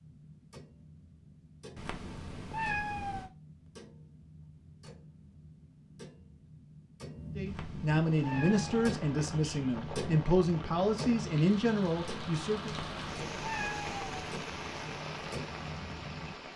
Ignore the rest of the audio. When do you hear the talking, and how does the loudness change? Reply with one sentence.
The talking can be heard from 7.3 to 12.8 s, at a steady volume.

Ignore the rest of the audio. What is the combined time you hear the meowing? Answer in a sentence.
You can hear the meowing for 5 seconds altogether.